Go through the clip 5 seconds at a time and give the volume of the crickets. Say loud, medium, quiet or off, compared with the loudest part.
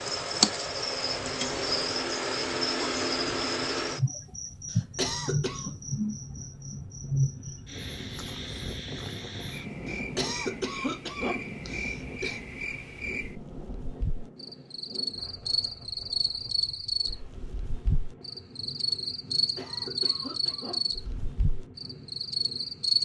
loud, medium, medium, loud, loud.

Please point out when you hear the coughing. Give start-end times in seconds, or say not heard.
4.7-5.7, 9.8-12.4, 19.4-21.1.